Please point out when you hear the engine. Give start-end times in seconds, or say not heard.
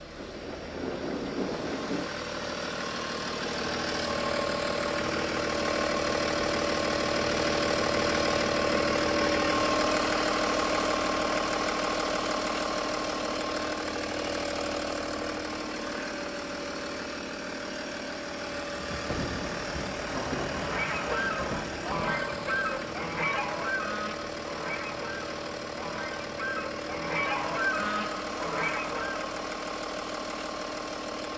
0.0-31.3.